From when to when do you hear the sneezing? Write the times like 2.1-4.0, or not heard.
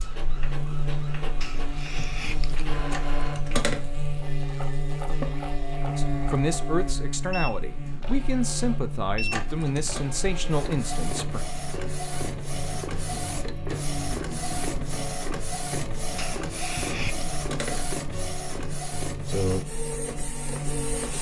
1.4-2.6, 16.1-17.2.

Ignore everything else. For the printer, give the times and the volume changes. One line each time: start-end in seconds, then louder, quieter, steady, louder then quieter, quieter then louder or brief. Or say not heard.
0.0-21.1 louder.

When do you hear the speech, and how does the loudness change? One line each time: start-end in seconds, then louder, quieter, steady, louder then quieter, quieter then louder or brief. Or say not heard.
6.0-11.4 steady.